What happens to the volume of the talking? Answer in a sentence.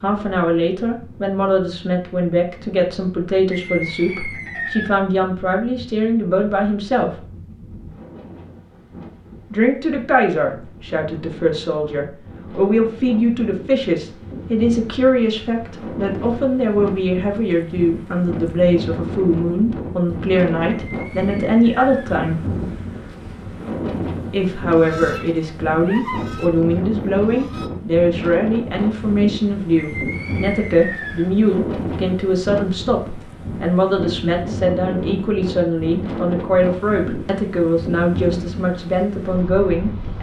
The volume of the talking stays about the same.